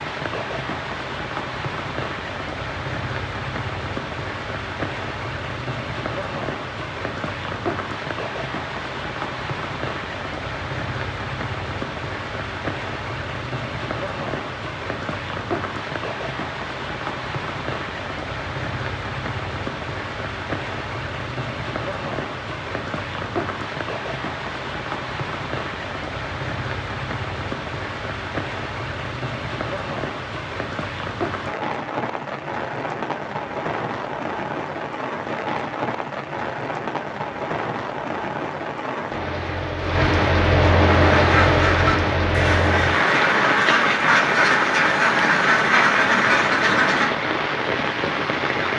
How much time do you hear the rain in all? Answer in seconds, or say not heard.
49 s.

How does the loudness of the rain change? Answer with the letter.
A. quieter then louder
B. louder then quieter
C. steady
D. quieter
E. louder
E.